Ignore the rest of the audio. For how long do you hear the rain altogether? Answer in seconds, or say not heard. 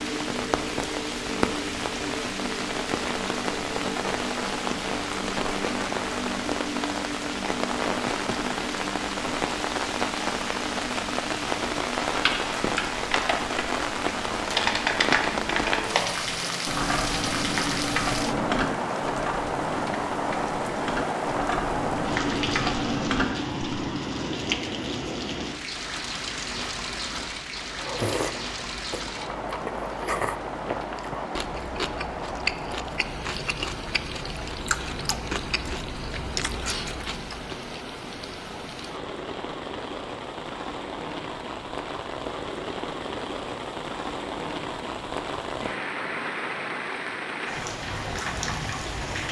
49 s.